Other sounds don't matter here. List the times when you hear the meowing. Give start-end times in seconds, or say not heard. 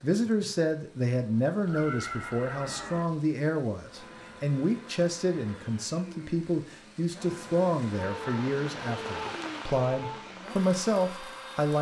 1.6-3.0, 8.0-10.3.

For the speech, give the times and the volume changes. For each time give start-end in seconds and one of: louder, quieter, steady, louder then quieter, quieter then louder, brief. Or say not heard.
0.0-11.7 steady.